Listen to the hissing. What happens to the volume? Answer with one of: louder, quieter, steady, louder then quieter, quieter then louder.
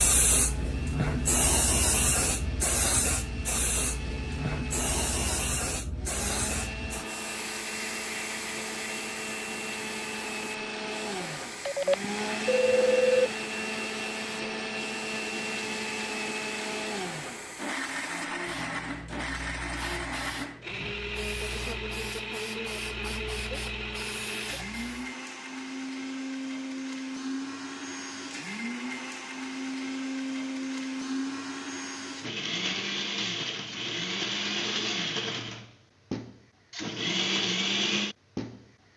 quieter.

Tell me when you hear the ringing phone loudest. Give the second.
13 s.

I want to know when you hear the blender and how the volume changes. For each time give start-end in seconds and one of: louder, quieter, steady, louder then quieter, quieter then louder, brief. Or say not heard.
0.3-38.9 louder.